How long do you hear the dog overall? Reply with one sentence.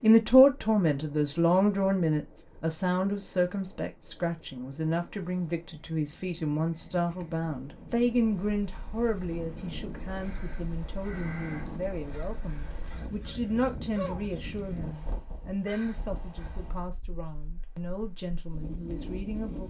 The dog can't be heard in this clip.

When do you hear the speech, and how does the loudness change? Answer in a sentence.
The speech can be heard from 0.0 to 19.6 s, getting quieter.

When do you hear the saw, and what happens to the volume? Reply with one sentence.
The saw can't be heard in this clip.